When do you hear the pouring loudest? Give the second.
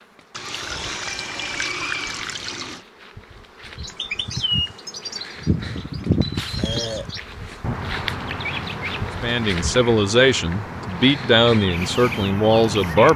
2 s.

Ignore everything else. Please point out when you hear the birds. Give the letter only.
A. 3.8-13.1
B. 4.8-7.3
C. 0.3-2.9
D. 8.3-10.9
A.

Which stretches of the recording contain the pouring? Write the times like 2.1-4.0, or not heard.
0.3-2.9.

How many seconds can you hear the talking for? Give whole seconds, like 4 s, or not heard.
4 s.